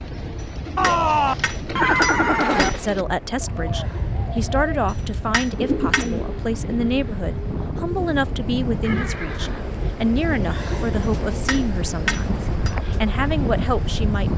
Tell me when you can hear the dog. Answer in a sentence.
You can't hear the dog here.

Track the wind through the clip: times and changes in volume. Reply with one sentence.
The wind can be heard from 0.0 to 14.3 s, getting louder.